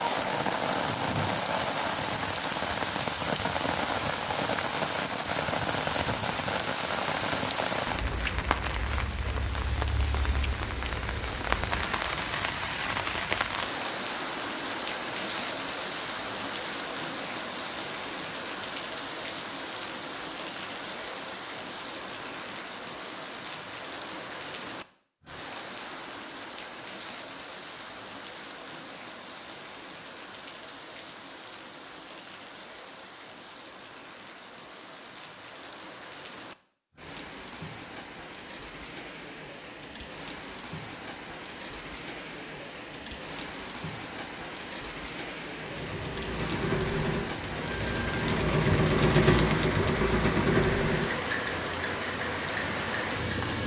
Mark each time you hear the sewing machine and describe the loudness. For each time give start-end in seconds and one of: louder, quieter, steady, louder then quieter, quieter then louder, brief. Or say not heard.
45.5-53.6 louder then quieter.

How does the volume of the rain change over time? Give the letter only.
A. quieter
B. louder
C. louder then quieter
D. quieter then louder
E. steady
D.